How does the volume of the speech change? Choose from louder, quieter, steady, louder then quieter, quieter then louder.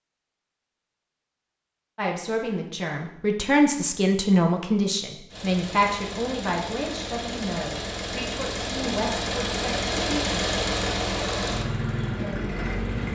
quieter.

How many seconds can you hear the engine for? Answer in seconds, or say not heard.
8 s.